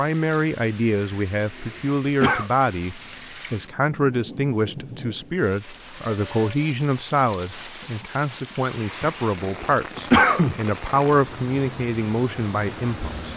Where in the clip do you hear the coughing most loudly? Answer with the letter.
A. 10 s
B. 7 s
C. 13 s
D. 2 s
A.